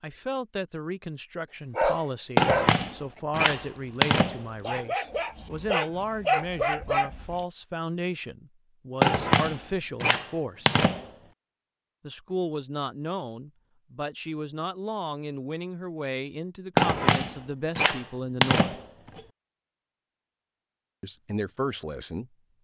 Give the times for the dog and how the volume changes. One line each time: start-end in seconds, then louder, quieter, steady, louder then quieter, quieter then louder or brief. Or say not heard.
1.8-7.4 quieter then louder.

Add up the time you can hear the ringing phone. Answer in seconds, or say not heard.
7 s.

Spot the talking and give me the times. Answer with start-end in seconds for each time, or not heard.
0.0-10.7, 12.1-18.8, 21.0-22.3.